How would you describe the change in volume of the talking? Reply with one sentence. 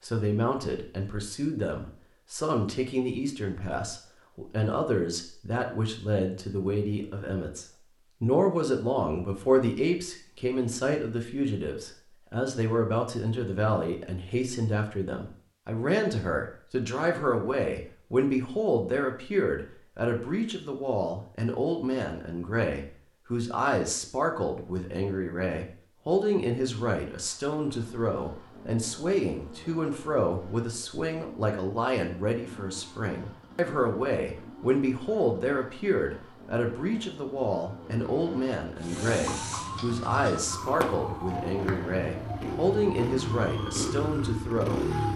The loudness of the talking stays about the same.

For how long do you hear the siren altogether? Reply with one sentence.
You can hear the siren for 6 seconds altogether.